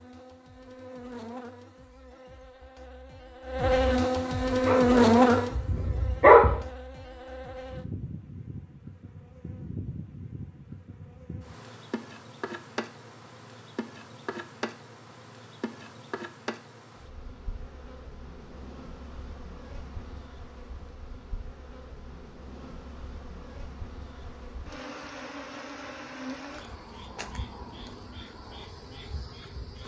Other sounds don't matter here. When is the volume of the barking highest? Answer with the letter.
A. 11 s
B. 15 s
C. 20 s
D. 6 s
D.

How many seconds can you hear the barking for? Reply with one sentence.
The barking can be heard for 2 seconds in total.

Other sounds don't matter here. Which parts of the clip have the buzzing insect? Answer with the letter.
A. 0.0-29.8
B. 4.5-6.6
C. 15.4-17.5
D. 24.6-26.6
A.